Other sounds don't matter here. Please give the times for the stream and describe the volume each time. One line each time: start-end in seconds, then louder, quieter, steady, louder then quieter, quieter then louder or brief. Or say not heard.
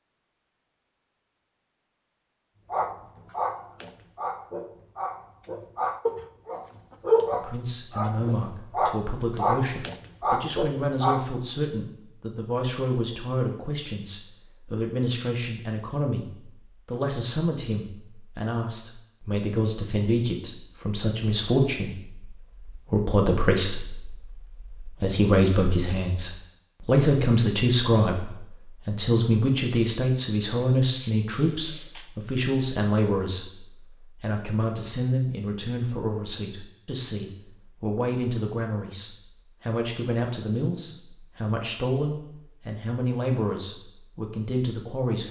not heard.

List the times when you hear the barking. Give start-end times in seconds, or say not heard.
2.7-11.3.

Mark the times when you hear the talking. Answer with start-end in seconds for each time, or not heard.
7.3-45.2.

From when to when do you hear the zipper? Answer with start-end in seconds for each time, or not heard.
not heard.